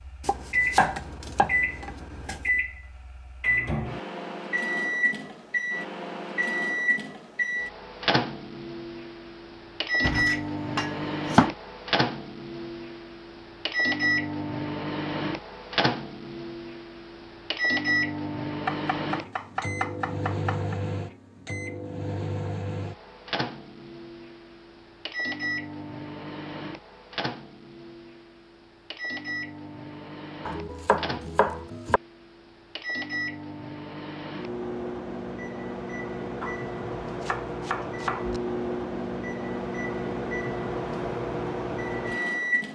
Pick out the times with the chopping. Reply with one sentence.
The chopping can be heard from 0.2 to 2.5 s, from 10.0 to 11.5 s, from 18.6 to 20.8 s, from 30.4 to 32.0 s and from 36.4 to 38.4 s.